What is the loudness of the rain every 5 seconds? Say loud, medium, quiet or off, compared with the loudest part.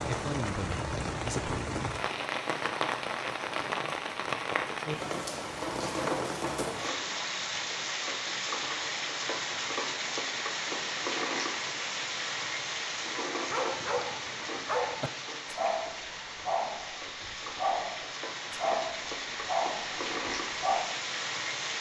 loud, loud, loud, medium, loud.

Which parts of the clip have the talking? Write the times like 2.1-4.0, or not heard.
0.1-1.6.